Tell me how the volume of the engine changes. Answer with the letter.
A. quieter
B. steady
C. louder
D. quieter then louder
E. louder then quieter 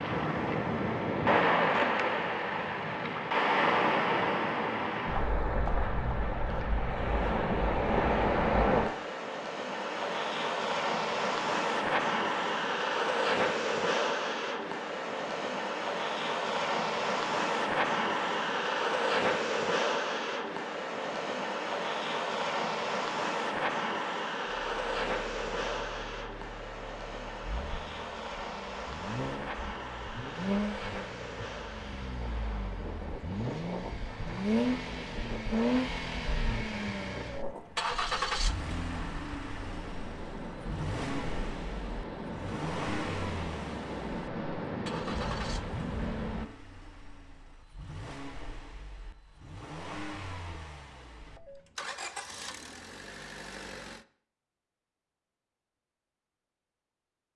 E.